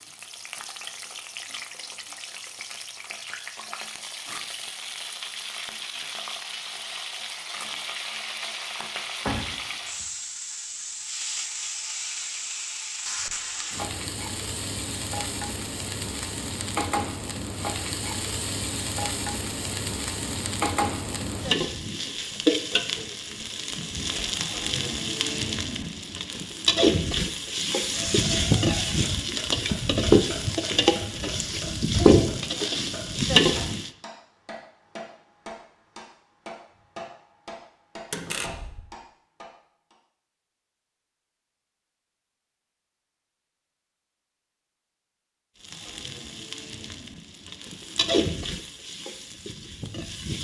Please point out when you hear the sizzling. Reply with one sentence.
The sizzling can be heard from 0.0 to 33.9 s and from 45.6 to 50.3 s.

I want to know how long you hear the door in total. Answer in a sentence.
The door can be heard for 3 seconds in total.